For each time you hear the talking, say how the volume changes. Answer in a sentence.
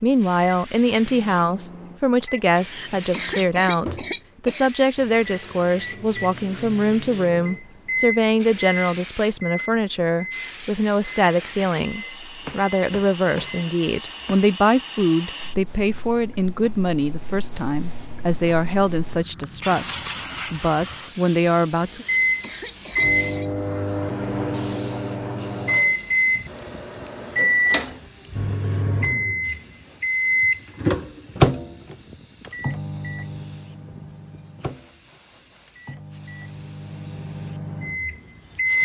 You can hear the talking from 0.0 to 22.1 s, at a steady volume.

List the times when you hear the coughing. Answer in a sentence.
You can hear the coughing from 2.5 to 4.8 s and from 21.9 to 23.5 s.